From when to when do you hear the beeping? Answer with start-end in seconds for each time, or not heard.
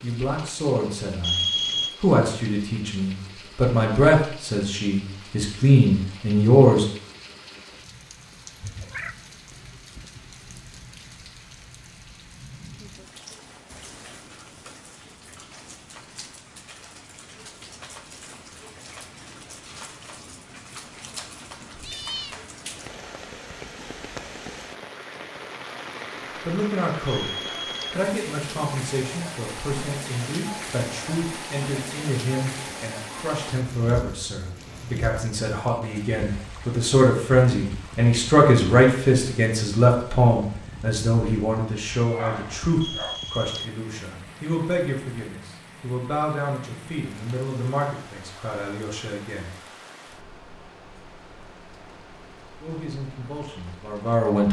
1.2-1.9, 27.1-27.9, 42.8-43.6.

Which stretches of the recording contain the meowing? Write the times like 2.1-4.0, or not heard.
8.6-9.2, 21.7-22.4, 42.0-43.2.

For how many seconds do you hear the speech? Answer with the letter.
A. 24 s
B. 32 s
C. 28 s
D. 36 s
B.